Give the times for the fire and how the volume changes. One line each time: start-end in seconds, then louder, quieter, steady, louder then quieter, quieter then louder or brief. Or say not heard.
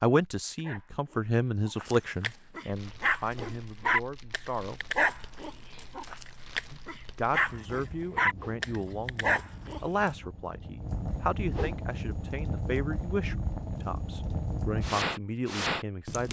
2.6-16.2 louder.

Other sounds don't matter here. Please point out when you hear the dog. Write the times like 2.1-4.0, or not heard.
0.6-10.1.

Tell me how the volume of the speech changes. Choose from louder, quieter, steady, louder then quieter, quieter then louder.
quieter.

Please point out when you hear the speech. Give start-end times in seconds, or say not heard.
0.0-4.8, 6.7-16.2.